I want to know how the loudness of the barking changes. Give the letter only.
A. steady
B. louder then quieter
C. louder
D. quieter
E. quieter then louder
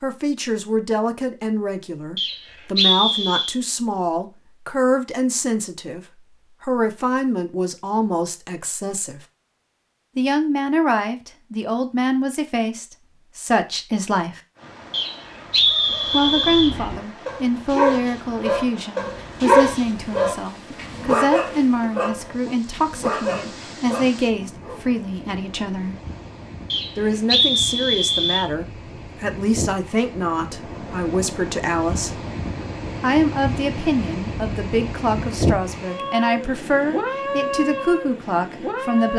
B.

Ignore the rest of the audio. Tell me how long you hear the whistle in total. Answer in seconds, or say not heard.
5 s.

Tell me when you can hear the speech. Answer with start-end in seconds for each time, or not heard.
0.0-9.2, 10.2-14.4, 16.1-25.9, 26.9-32.2, 33.0-39.1.